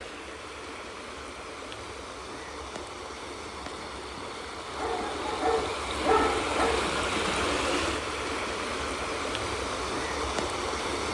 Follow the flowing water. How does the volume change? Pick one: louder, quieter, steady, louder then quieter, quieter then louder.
louder.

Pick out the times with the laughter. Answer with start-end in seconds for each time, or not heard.
not heard.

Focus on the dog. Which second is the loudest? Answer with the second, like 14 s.
6 s.